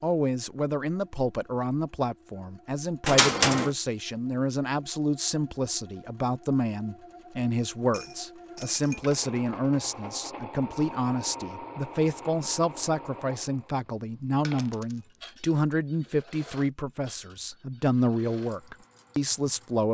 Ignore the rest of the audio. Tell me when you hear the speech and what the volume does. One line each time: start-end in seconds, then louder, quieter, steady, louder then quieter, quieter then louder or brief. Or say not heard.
0.0-19.9 steady.